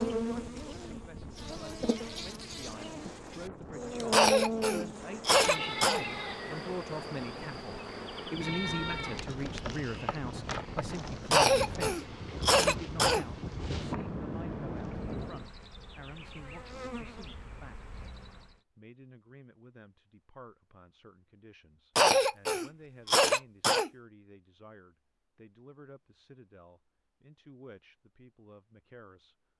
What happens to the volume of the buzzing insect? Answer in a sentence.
The loudness of the buzzing insect goes up, then down.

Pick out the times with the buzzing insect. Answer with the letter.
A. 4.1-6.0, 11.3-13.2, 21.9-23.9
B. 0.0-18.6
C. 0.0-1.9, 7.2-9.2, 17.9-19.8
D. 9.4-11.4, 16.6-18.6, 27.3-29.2
B.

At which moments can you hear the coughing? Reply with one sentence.
The coughing can be heard from 4.1 to 6.0 s, from 11.3 to 13.2 s and from 21.9 to 23.9 s.